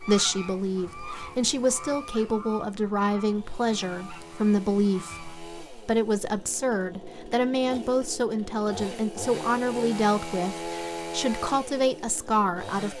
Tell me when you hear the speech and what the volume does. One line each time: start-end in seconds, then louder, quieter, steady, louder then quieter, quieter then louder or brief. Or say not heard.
0.0-12.9 steady.